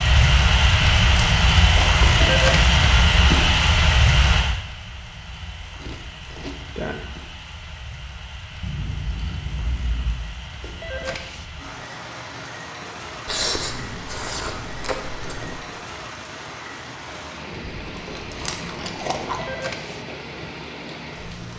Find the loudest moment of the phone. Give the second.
2 s.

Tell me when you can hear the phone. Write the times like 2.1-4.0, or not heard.
2.0-2.8, 10.6-11.4, 19.2-20.1.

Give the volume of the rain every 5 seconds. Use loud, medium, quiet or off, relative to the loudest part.
loud, quiet, quiet, quiet, quiet.